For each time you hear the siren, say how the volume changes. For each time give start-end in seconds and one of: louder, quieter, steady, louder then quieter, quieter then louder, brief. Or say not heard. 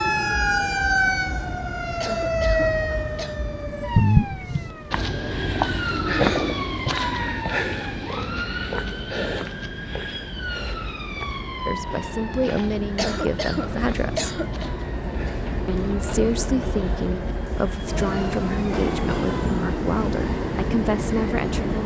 0.0-19.6 quieter.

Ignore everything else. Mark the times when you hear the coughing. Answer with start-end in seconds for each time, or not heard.
2.0-3.4, 12.9-14.7.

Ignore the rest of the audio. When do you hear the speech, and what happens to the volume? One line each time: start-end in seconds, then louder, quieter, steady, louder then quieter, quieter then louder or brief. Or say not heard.
11.7-14.3 brief
15.7-21.8 steady.